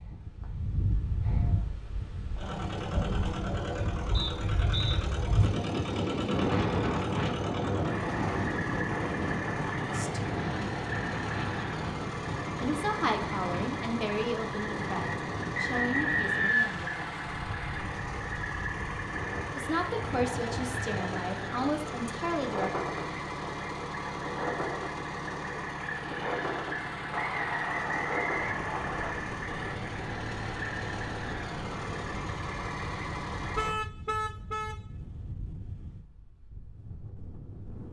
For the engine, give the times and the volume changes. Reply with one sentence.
The engine can be heard from 2.4 to 33.8 s, at a steady volume.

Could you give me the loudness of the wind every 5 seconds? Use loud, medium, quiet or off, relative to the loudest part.
medium, loud, medium, medium, medium, medium, quiet, quiet.